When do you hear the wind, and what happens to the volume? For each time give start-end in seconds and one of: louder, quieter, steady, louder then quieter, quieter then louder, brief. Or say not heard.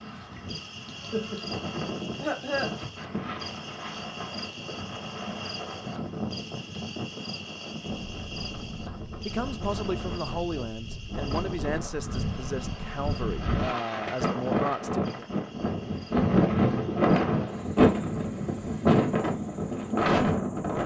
0.0-20.8 louder.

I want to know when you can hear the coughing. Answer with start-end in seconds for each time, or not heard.
0.8-2.8.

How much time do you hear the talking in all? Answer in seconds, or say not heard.
6 s.